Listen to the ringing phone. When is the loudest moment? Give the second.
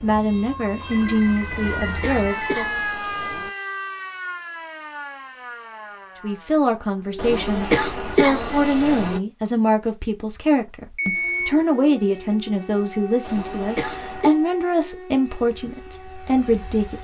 11 s.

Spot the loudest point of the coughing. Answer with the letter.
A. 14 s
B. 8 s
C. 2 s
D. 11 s
B.